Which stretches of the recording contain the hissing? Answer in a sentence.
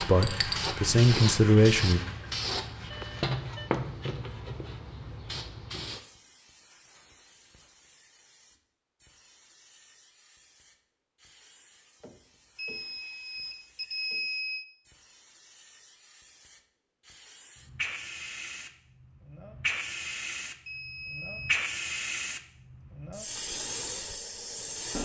The hissing can be heard from 0.0 to 25.0 s.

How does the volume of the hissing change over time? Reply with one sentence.
The loudness of the hissing goes down, then up.